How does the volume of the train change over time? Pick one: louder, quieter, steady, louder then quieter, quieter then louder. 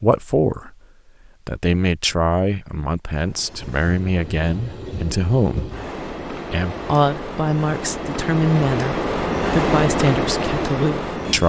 louder.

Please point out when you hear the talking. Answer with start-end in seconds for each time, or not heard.
0.0-0.7, 1.4-5.7, 6.5-11.4.